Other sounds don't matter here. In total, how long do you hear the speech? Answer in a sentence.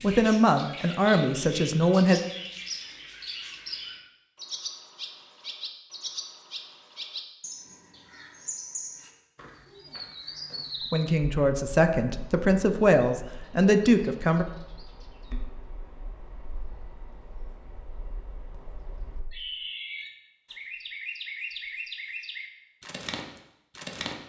You can hear the speech for 6 seconds altogether.